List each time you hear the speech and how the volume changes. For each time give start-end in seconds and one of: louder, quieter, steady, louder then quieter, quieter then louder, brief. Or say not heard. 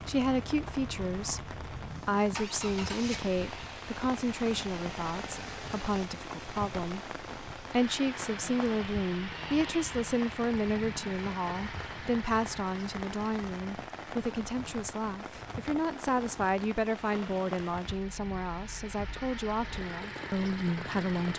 0.1-21.3 steady.